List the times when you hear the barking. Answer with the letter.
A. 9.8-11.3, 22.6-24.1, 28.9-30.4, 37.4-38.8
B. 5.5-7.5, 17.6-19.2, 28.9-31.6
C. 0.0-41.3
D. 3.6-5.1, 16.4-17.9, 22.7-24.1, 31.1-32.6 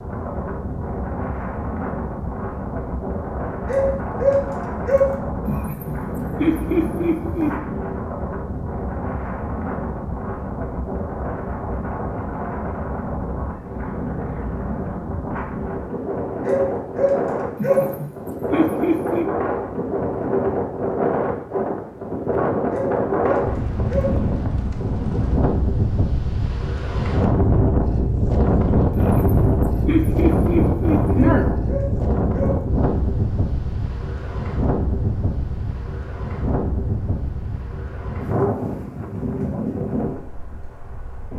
D.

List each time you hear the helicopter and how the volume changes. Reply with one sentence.
You can't hear the helicopter here.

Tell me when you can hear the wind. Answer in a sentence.
The wind can be heard from 0.0 to 41.3 s.